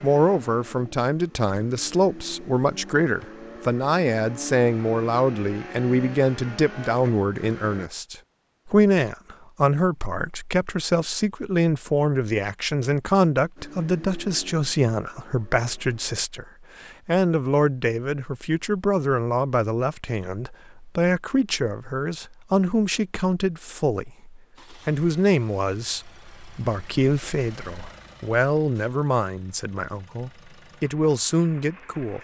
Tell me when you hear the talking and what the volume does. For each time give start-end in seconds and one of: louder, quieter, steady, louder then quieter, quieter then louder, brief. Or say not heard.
0.0-32.1 steady.